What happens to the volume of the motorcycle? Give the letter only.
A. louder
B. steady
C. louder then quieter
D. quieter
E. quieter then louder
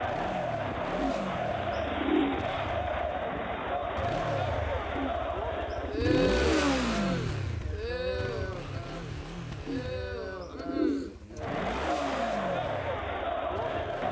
C.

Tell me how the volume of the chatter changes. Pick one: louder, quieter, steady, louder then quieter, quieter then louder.
quieter then louder.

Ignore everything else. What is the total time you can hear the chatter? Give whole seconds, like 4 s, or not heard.
14 s.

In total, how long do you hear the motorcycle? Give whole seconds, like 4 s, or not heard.
14 s.